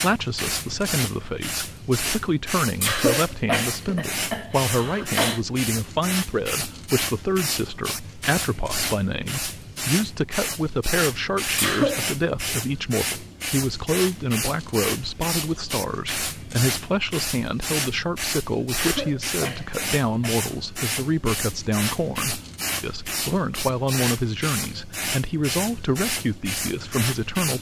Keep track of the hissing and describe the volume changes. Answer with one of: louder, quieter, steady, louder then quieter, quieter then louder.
steady.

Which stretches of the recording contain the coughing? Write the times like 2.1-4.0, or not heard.
2.8-5.4, 11.6-12.1, 18.8-20.4.